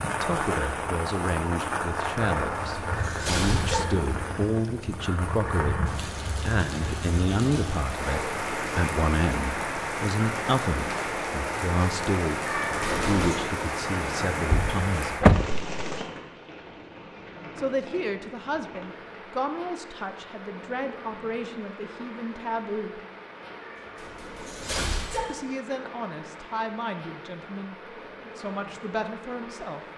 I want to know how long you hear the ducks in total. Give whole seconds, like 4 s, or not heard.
not heard.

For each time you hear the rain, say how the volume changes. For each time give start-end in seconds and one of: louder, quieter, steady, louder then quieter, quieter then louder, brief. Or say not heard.
0.0-29.9 quieter.